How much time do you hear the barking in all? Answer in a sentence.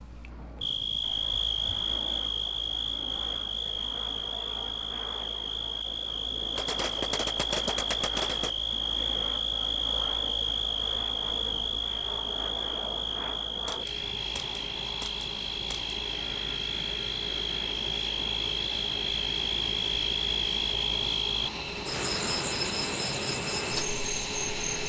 You can't hear the barking here.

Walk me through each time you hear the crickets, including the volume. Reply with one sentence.
The crickets can be heard from 0.0 to 24.8 s, at a steady volume.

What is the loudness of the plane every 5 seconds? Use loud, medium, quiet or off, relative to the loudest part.
medium, medium, medium, loud, loud.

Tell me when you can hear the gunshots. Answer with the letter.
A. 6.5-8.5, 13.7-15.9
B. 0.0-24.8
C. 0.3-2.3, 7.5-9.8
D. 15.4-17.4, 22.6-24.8
A.